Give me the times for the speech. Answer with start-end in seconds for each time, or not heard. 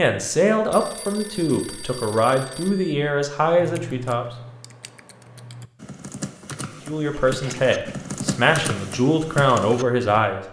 0.0-4.2, 6.8-10.4.